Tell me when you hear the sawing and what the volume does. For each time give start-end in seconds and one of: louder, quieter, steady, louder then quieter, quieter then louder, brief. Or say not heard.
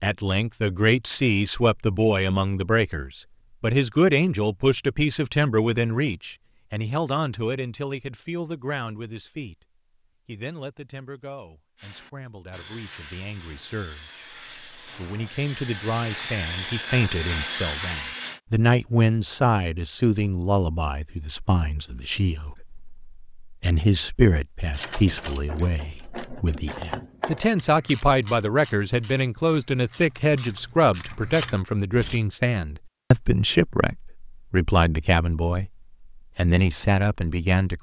11.8-18.4 louder.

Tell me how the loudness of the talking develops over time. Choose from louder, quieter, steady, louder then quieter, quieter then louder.
quieter then louder.